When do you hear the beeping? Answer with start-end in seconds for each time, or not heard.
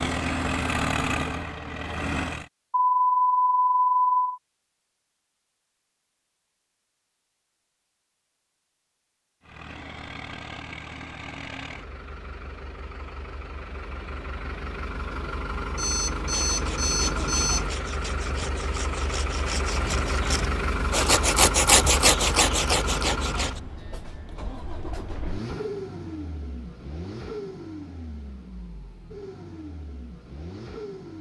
2.7-4.4, 15.8-17.6.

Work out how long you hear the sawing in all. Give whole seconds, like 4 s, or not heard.
7 s.